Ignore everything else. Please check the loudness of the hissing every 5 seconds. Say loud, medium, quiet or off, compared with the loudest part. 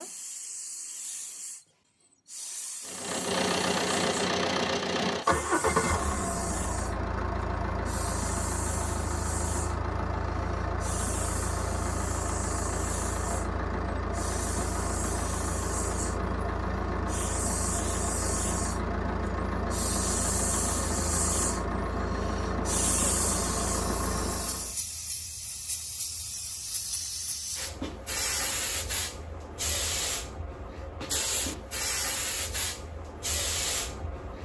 medium, medium, medium, medium, loud, loud, loud.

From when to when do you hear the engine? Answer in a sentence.
You can hear the engine from 2.9 to 24.8 s.